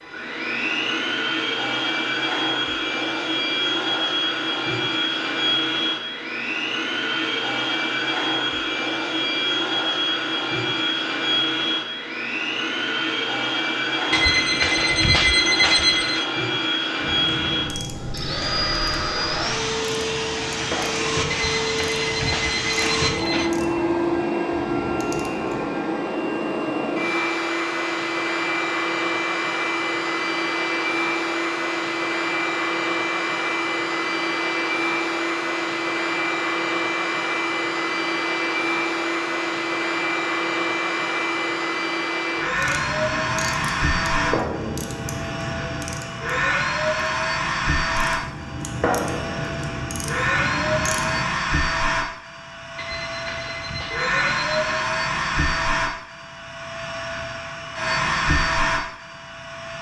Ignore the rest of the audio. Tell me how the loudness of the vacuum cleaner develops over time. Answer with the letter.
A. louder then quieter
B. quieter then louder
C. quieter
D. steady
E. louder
D.